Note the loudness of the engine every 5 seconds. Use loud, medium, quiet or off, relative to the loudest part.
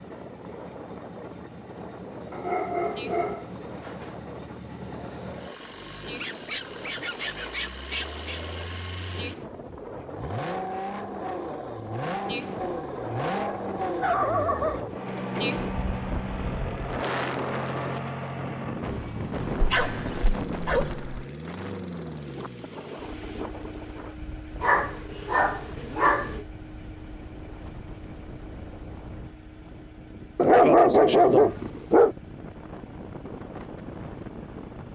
medium, medium, loud, loud, medium, quiet, quiet.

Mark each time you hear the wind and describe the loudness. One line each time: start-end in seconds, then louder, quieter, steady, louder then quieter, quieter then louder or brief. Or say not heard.
0.0-34.9 louder then quieter.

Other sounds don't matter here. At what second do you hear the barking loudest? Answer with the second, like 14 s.
31 s.